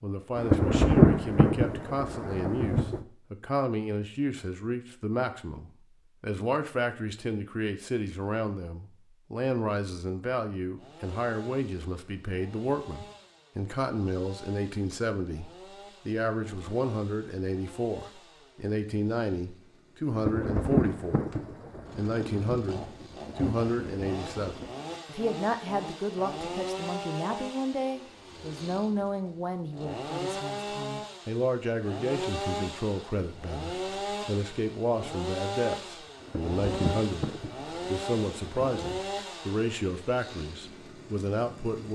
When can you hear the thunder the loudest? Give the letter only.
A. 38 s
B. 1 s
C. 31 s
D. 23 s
B.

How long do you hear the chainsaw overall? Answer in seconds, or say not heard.
31 s.